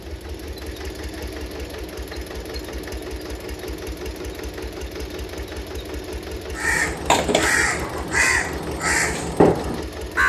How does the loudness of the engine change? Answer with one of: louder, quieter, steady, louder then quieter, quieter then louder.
steady.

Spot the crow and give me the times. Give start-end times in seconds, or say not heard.
6.5-10.2.